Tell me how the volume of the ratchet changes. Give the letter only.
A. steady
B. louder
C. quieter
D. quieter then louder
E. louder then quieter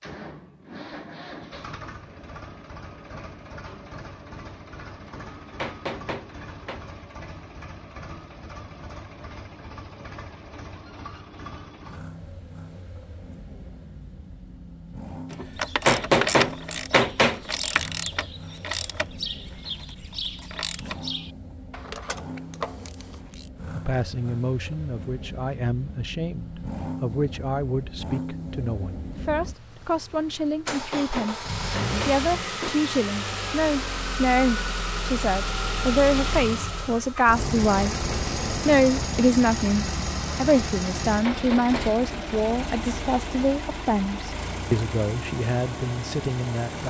C.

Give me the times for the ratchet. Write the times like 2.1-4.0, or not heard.
15.3-23.5.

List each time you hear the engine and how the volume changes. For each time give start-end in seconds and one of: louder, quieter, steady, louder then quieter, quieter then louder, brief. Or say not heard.
0.0-46.8 louder.